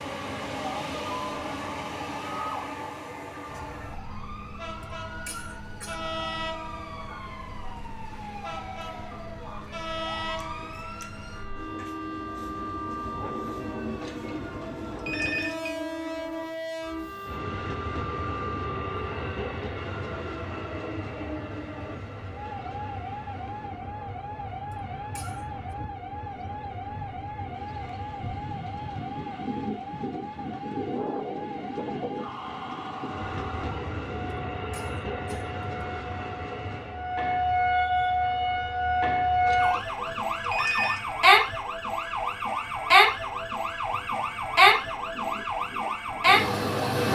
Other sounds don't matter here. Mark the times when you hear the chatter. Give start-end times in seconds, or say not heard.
not heard.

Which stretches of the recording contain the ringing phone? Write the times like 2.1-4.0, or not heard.
14.0-15.7, 39.5-41.1.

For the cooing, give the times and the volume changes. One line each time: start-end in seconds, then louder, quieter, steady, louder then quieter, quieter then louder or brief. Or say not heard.
not heard.